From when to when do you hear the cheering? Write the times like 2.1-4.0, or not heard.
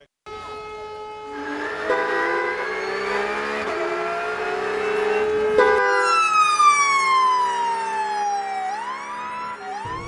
not heard.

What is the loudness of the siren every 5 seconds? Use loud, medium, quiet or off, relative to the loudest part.
medium, loud.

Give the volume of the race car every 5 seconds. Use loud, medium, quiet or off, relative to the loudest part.
loud, medium.